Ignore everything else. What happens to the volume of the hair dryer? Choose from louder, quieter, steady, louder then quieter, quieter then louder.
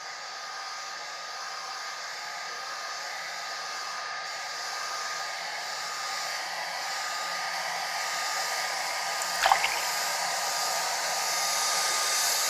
louder.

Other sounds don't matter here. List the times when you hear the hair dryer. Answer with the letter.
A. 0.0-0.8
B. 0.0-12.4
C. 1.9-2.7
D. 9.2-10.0
B.